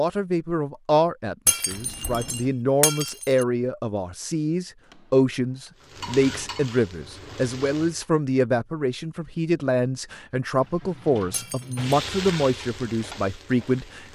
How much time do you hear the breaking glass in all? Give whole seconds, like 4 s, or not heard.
3 s.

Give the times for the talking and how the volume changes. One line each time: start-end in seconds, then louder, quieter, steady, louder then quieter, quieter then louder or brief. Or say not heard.
0.0-14.1 steady.